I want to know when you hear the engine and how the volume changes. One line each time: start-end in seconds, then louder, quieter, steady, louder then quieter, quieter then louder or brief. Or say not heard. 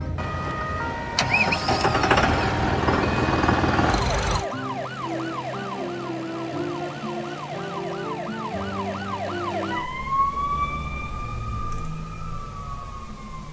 0.0-4.5 louder.